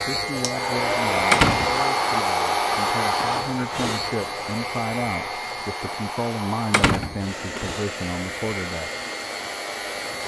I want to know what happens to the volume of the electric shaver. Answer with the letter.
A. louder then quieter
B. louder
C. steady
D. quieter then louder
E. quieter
E.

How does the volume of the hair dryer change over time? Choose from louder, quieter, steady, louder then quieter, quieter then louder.
quieter.